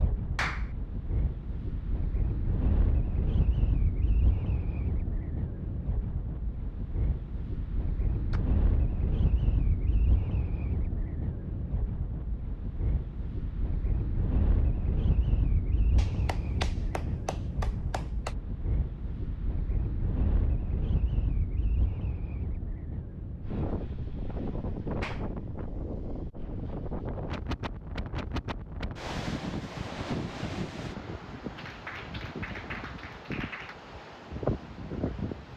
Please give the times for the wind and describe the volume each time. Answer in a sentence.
The wind can be heard from 0.0 to 35.5 s, at a steady volume.